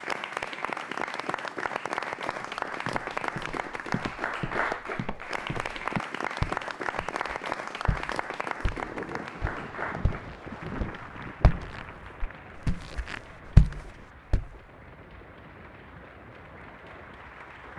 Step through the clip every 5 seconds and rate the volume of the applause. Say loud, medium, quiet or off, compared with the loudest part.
loud, loud, quiet, quiet.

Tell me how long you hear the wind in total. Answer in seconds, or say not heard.
9 s.